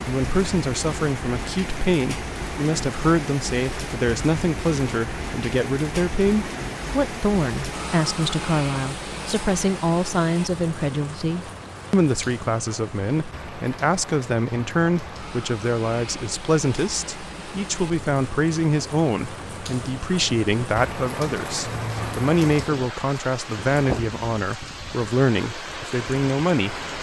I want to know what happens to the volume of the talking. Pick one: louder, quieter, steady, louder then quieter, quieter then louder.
steady.